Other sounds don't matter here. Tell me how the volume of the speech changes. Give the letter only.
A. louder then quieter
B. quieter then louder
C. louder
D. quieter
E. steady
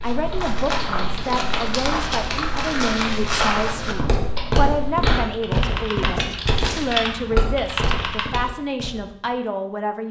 E.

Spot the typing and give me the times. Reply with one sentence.
You can hear the typing from 0.0 to 8.5 s.